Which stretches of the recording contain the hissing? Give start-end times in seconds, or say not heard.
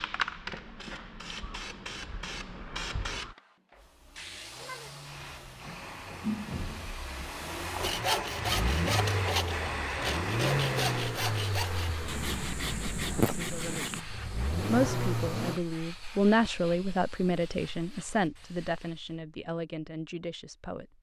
0.0-19.2.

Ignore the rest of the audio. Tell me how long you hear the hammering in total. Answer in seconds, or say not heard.
not heard.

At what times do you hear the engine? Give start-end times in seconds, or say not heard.
3.7-15.6.